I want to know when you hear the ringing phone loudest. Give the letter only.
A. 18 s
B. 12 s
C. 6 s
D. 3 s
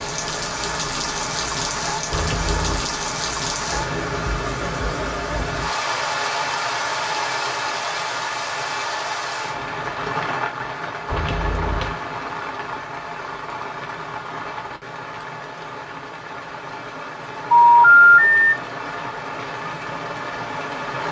A.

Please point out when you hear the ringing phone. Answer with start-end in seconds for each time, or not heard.
2.1-2.9, 11.1-11.9, 17.5-18.4.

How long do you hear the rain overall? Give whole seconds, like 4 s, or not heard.
21 s.